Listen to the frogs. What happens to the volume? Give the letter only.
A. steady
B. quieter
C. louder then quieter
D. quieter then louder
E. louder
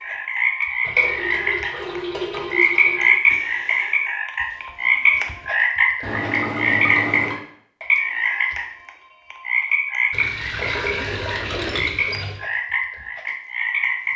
B.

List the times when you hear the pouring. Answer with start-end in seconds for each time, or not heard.
0.8-3.2, 6.0-7.4, 10.1-12.4.